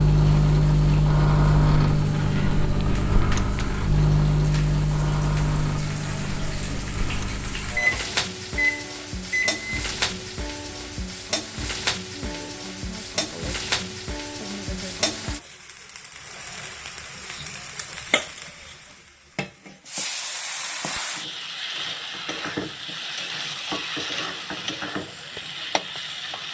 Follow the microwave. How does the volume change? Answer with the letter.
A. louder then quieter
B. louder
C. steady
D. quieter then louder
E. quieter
E.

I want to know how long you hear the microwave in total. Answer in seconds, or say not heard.
11 s.